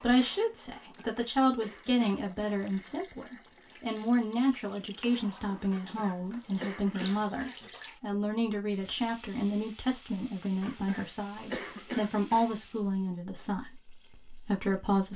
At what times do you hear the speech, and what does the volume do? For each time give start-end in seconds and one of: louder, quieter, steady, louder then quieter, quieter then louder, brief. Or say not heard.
0.0-15.1 steady.